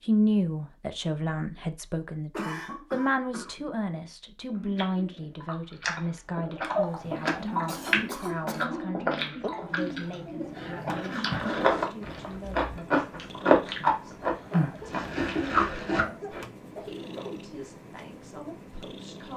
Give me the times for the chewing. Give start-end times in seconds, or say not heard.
4.5-16.4.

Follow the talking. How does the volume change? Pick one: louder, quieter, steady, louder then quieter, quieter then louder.
quieter.